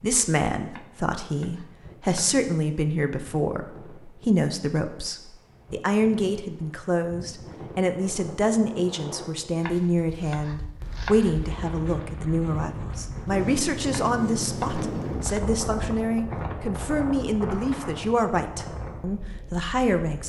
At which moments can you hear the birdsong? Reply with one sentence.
You can't hear the birdsong here.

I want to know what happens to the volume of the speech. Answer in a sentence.
The loudness of the speech stays about the same.